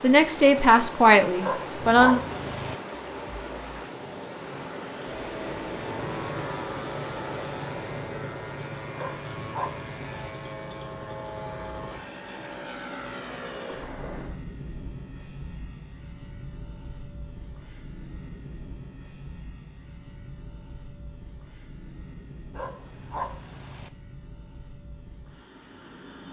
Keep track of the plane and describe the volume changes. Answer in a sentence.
The loudness of the plane goes down.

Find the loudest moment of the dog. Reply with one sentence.
The volume of the dog peaks at 2 seconds.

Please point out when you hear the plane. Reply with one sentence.
The plane can be heard from 5.0 to 26.2 s.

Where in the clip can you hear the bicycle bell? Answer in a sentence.
You can't hear the bicycle bell here.